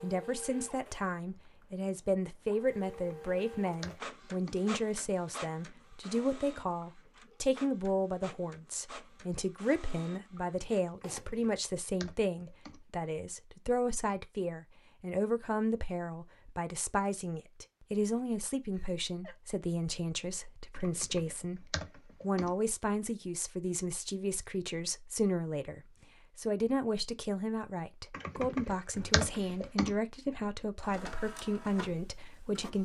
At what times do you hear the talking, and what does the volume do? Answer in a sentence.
You can hear the talking from 0.0 to 32.8 s, at a steady volume.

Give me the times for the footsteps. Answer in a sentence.
You can't hear the footsteps here.